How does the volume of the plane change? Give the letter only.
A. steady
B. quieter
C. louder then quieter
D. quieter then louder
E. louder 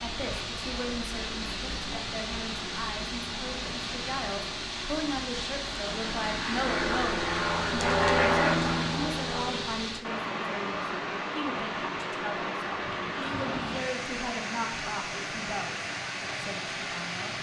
C.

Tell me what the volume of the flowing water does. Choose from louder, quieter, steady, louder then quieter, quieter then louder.
steady.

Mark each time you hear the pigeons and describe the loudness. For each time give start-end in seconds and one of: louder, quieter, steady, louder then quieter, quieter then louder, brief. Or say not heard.
not heard.